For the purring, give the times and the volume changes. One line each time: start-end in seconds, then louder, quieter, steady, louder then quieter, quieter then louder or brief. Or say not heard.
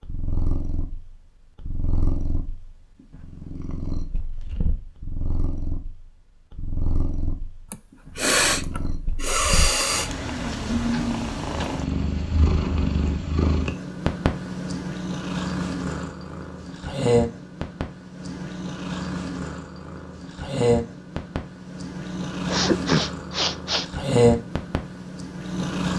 0.0-25.9 louder.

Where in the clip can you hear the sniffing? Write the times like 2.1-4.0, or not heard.
7.7-10.1, 22.4-23.9.